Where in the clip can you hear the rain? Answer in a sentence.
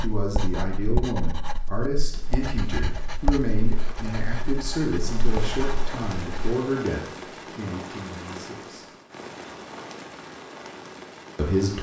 You can hear the rain from 2.0 to 11.7 s.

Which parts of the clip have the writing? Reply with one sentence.
The writing can be heard from 0.0 to 6.5 s.